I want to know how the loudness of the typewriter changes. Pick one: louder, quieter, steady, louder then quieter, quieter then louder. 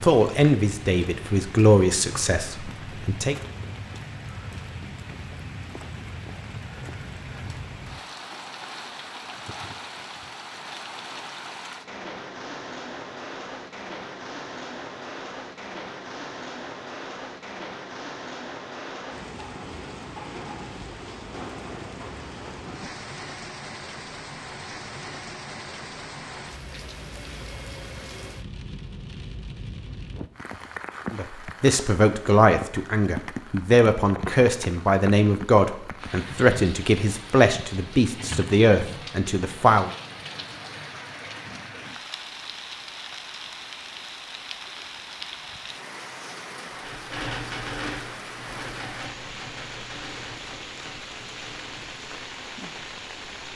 quieter.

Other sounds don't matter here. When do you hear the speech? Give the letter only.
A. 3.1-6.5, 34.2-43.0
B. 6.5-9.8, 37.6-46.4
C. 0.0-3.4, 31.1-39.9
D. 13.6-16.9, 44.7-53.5
C.